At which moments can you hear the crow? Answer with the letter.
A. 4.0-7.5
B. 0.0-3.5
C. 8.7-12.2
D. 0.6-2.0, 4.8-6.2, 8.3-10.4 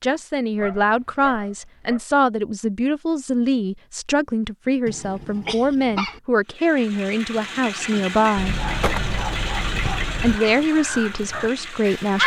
C.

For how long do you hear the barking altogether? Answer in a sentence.
The barking can be heard for 5 seconds in total.